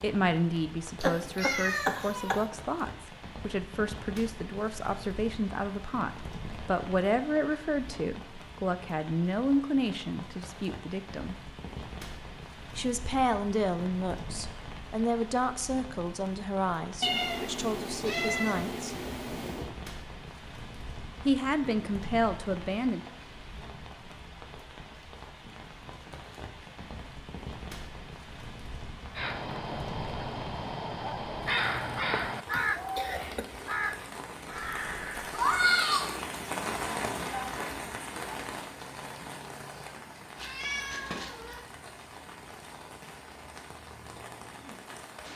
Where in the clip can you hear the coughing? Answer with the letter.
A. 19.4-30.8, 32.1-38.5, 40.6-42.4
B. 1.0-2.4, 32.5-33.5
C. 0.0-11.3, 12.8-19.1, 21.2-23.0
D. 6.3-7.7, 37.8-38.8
B.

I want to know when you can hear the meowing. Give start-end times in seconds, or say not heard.
1.0-2.5, 17.0-19.7, 40.4-41.6.